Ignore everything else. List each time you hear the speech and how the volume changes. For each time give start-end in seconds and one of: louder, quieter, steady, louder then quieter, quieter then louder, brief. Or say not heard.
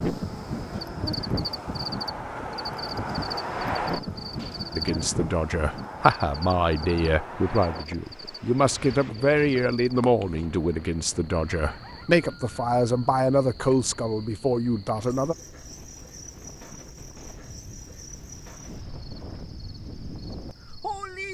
4.7-15.3 steady.